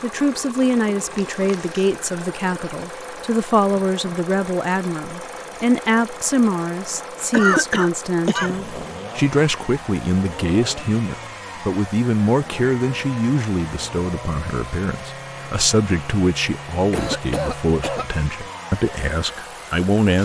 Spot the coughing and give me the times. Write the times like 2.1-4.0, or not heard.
1.3-1.9, 7.3-8.6, 16.9-18.1.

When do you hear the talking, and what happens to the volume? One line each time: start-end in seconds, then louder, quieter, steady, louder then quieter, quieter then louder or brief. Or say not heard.
0.0-20.2 steady.